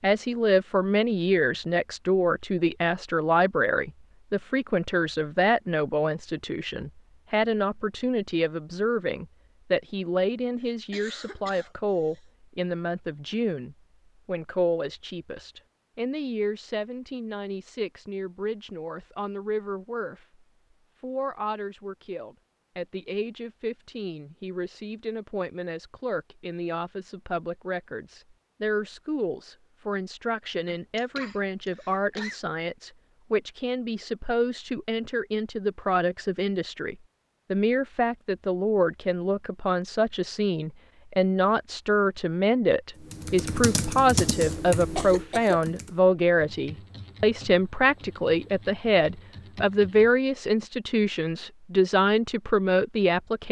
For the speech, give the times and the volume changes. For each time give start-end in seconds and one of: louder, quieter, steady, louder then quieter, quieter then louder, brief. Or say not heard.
0.0-53.4 quieter then louder.